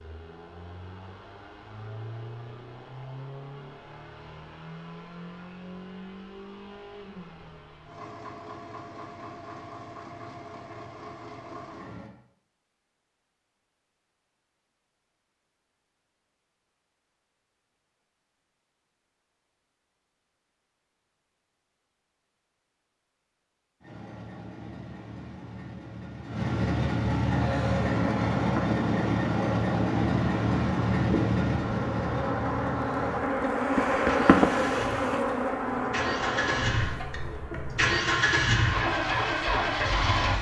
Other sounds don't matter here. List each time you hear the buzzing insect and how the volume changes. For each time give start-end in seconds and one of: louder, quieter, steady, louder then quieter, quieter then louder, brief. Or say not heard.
27.3-37.9 louder then quieter.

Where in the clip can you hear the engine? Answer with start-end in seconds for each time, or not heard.
0.0-12.1, 23.8-40.3.